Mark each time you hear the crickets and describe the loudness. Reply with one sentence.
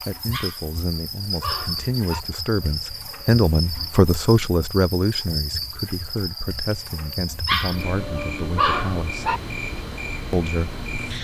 You can hear the crickets from 0.0 to 11.1 s, at a steady volume.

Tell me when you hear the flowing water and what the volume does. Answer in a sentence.
The flowing water can't be heard in this clip.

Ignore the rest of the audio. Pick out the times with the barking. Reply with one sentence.
You can hear the barking from 0.2 to 2.2 s and from 7.3 to 9.4 s.